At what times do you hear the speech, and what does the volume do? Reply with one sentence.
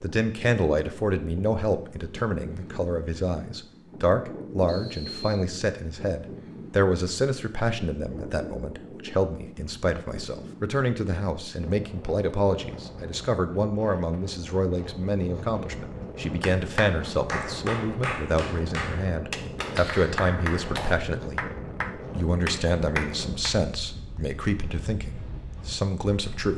You can hear the speech from 0.0 to 26.5 s, at a steady volume.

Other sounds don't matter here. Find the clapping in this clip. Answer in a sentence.
You can hear the clapping from 16.4 to 23.6 s.